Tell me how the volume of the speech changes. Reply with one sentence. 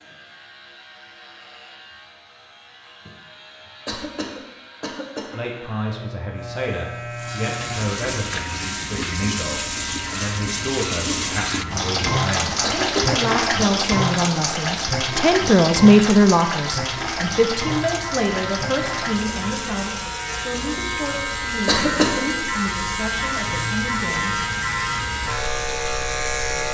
The loudness of the speech goes up, then down.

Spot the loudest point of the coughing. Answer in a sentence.
The loudest moment of the coughing is at 22 seconds.